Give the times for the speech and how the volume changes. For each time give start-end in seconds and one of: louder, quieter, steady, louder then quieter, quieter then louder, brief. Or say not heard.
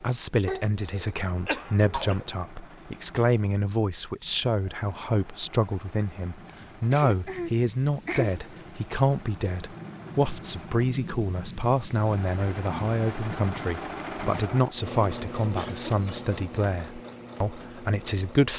0.0-18.5 steady.